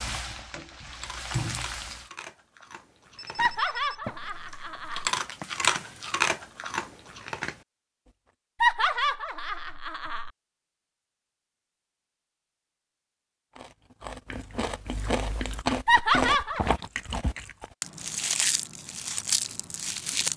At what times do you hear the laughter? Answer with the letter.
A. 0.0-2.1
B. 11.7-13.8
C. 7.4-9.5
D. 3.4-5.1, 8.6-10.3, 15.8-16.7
D.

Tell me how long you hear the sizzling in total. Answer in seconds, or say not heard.
2 s.